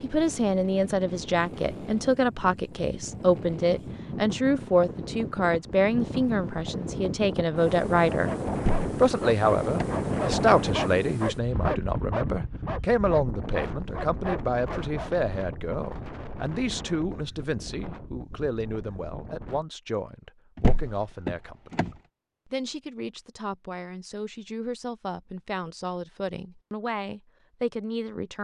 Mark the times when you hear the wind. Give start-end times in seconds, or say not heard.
0.0-19.6.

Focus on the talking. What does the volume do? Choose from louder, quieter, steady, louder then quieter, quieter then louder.
quieter.